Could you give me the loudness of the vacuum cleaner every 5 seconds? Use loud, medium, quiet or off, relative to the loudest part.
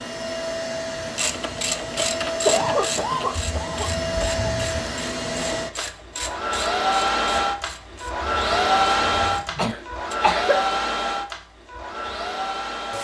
medium, loud, loud.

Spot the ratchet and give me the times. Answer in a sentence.
You can hear the ratchet from 1.0 to 10.2 s.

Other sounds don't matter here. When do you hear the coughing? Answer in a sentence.
The coughing can be heard from 2.5 to 4.5 s and from 9.6 to 10.8 s.